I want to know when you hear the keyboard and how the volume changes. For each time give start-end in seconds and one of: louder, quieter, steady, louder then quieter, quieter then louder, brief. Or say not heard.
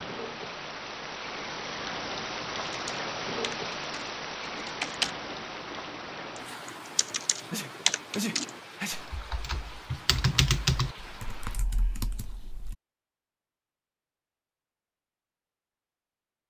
2.6-12.8 louder.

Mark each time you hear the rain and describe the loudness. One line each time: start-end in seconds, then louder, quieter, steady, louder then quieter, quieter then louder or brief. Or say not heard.
0.0-11.7 quieter.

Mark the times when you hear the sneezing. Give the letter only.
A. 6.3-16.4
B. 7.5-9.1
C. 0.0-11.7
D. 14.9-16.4
B.